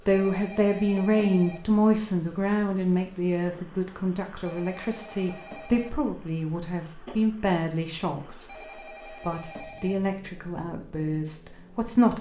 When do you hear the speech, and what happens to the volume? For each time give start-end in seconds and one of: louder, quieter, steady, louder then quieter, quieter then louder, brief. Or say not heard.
0.1-12.1 quieter.